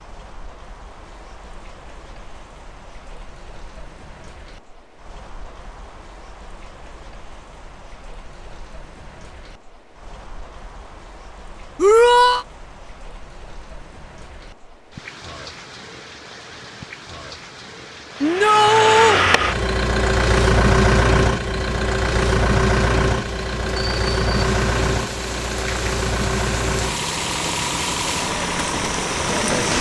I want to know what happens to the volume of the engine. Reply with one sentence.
The loudness of the engine goes down.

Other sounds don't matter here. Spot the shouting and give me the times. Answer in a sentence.
You can hear the shouting from 11.8 to 12.4 s and from 18.2 to 19.2 s.